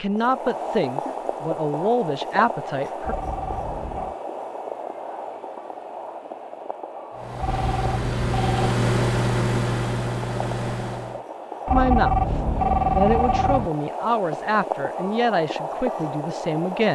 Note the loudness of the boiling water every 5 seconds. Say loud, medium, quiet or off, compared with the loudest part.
loud, medium, loud, loud.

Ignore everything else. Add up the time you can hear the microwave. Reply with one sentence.
You can hear the microwave for 4 seconds altogether.